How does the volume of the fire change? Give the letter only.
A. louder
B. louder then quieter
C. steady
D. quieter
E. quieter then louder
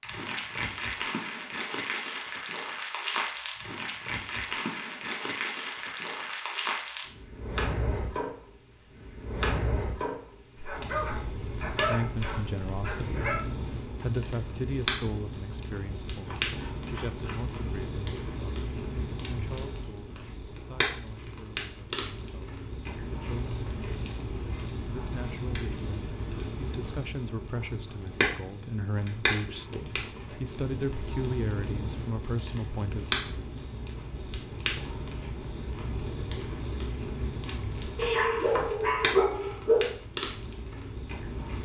C.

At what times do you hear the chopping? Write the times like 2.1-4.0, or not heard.
16.2-17.6, 37.5-39.0.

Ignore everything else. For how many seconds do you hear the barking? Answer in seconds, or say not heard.
5 s.